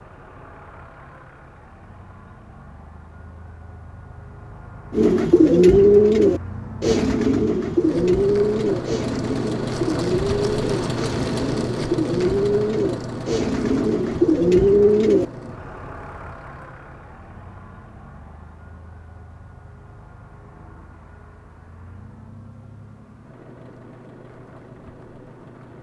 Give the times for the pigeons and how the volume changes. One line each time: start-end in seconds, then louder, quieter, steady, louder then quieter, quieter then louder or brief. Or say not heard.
4.9-15.2 quieter then louder.